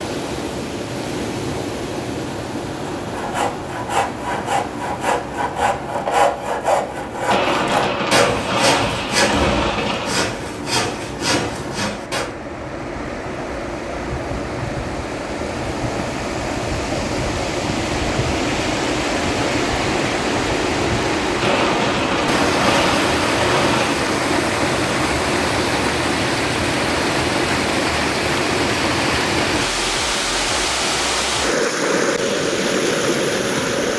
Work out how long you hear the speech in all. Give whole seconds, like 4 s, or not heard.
not heard.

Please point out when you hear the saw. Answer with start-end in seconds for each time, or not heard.
3.0-12.3.